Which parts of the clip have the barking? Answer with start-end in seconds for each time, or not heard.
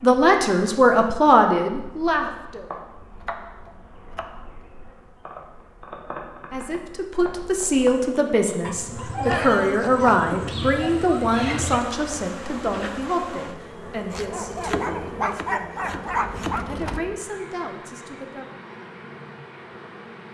8.6-11.8, 14.2-17.0.